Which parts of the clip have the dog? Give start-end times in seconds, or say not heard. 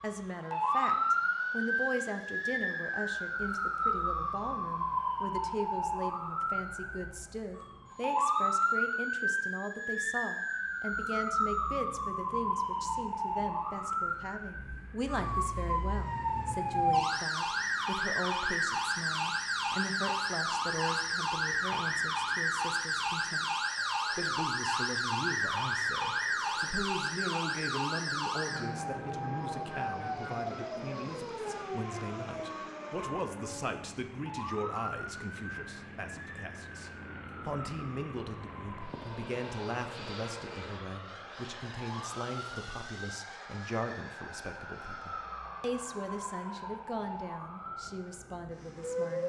not heard.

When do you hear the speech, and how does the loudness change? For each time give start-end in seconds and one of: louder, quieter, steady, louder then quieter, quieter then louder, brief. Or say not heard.
0.0-49.2 steady.